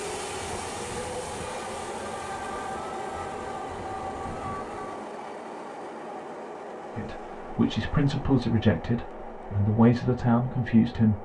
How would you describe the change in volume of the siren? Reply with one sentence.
The loudness of the siren goes up.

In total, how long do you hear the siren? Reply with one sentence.
The siren can be heard for 5 seconds in total.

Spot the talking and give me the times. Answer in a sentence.
The talking can be heard from 7.0 to 11.2 s.